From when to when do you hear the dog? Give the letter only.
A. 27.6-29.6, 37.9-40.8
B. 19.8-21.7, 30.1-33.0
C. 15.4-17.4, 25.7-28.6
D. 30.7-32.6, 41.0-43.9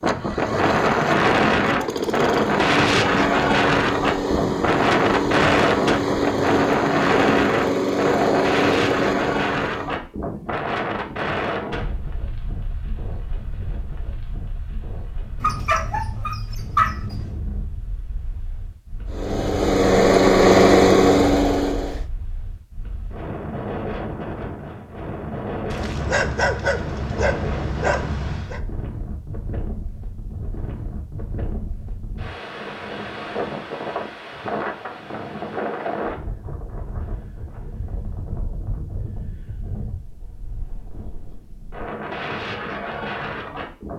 C.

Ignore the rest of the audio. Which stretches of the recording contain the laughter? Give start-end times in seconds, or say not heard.
not heard.